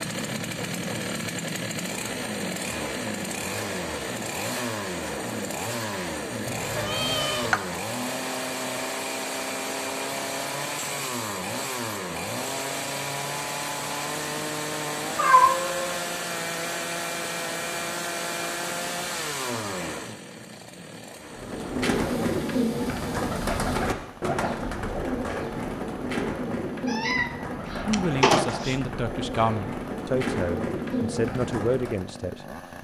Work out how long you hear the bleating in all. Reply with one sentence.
You can't hear the bleating here.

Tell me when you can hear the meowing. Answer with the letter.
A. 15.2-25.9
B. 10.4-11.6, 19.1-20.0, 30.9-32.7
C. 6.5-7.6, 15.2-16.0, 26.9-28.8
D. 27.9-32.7
C.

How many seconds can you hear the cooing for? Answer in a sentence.
The cooing can be heard for 11 seconds in total.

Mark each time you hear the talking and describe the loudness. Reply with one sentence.
The talking can be heard from 27.9 to 32.7 s, at a steady volume.